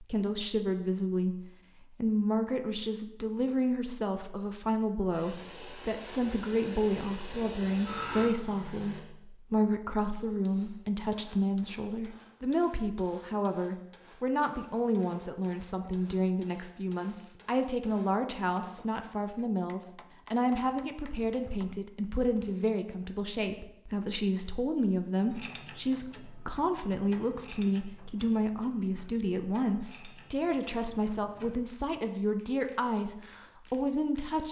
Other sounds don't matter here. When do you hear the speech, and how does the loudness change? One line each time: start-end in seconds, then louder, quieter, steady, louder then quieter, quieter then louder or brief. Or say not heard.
0.0-1.4 brief
2.0-34.4 steady.